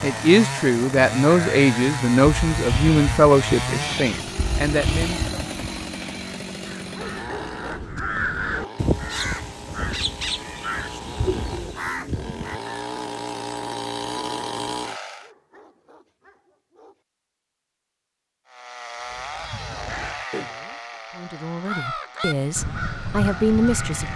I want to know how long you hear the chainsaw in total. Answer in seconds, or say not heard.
21 s.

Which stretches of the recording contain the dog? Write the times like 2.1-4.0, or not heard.
6.9-8.8, 15.2-17.1.